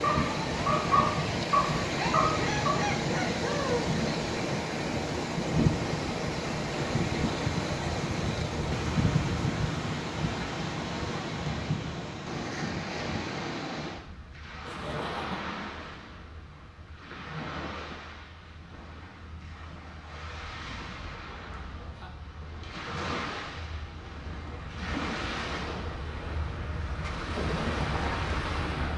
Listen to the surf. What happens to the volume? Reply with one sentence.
The loudness of the surf goes down, then up.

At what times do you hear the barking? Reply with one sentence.
The barking can be heard from 0.0 to 2.8 s.